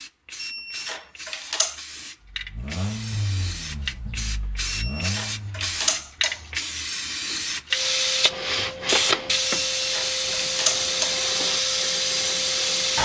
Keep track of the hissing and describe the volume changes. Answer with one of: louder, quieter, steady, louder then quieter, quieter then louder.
louder.